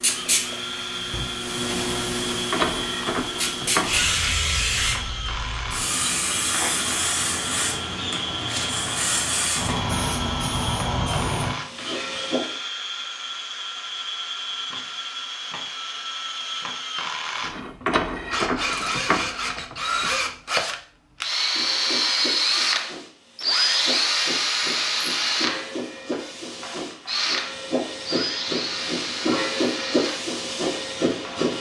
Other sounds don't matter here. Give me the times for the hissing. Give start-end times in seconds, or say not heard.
0.0-12.6, 21.4-31.5.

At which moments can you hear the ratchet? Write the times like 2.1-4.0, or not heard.
2.1-4.0, 17.4-20.1.